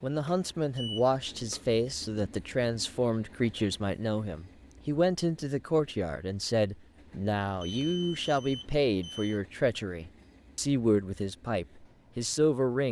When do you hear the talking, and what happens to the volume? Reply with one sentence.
The talking can be heard from 0.0 to 12.8 s, at a steady volume.